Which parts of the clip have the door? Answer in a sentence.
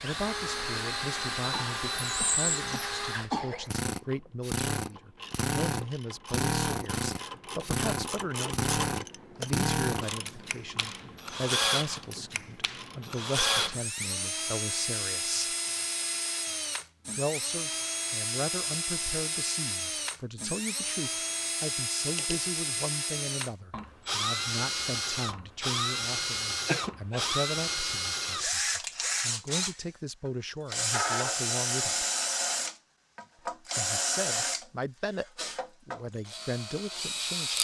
The door can't be heard in this clip.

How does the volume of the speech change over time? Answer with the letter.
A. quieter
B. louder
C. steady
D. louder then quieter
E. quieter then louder
C.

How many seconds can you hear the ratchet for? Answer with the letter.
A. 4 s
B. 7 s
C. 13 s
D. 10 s
D.